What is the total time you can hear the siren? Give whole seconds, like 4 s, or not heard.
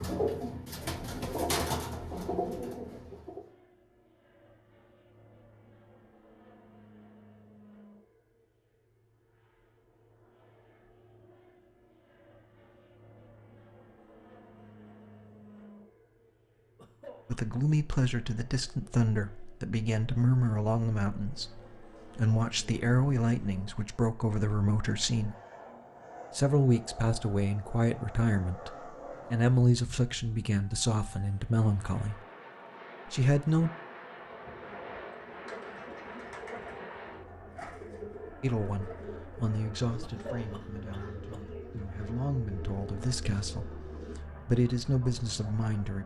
not heard.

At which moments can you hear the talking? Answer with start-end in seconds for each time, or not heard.
17.2-25.4, 26.3-32.2, 33.0-33.7, 38.4-46.0.